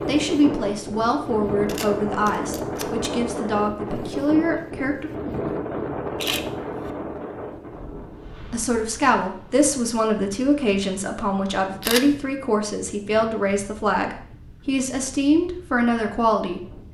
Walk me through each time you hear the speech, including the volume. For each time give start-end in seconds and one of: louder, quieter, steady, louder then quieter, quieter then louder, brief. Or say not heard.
0.1-5.1 steady
8.5-16.7 steady.